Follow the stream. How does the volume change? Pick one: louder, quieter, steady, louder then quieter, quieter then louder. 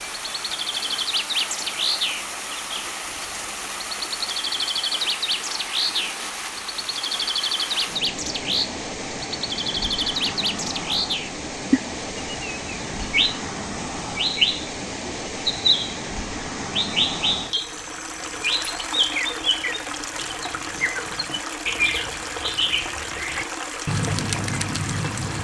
steady.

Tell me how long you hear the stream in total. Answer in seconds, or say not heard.
25 s.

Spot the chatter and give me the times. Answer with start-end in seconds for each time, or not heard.
not heard.